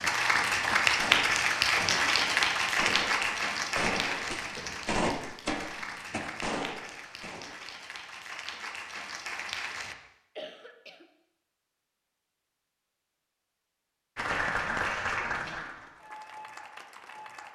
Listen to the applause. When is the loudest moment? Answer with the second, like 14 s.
1 s.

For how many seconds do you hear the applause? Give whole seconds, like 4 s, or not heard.
13 s.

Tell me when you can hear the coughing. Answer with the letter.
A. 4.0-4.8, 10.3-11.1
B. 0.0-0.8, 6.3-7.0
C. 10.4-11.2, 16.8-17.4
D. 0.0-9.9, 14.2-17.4
A.